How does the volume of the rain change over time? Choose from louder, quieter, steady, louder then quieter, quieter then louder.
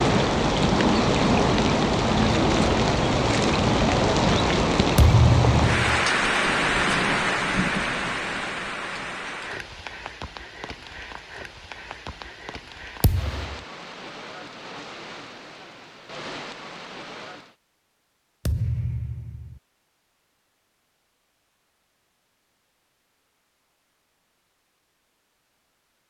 quieter.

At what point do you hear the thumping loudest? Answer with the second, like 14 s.
5 s.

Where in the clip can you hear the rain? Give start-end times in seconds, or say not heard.
0.0-17.6.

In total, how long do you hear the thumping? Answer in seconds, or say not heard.
3 s.